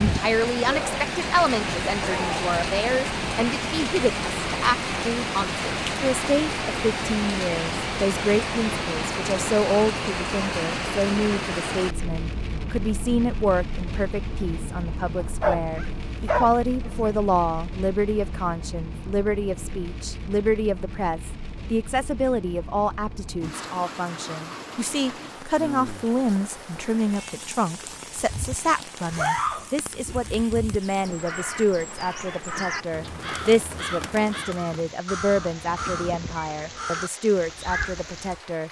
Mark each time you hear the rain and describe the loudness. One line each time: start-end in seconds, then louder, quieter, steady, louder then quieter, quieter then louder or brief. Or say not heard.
0.0-38.6 quieter.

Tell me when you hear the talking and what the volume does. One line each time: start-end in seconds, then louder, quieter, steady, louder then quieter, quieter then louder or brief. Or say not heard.
0.0-38.6 steady.